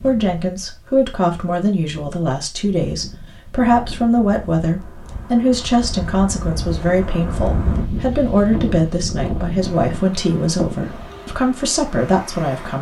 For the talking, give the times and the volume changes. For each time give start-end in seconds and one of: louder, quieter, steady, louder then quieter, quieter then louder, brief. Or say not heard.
0.0-12.7 steady.